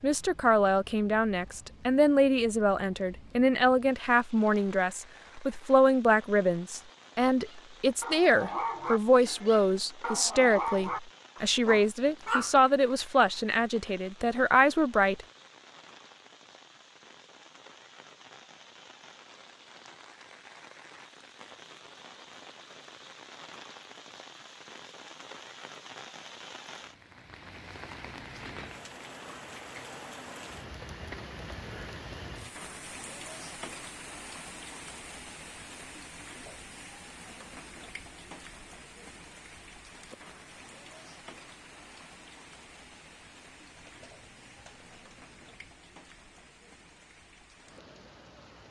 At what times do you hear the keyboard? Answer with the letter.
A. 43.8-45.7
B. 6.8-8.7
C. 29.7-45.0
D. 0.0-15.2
A.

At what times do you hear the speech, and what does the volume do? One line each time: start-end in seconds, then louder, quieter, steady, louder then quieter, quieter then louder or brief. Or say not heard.
0.0-15.2 steady.